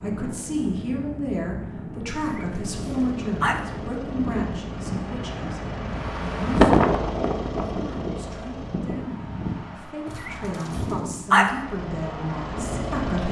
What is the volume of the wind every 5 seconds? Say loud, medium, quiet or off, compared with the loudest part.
medium, loud, medium.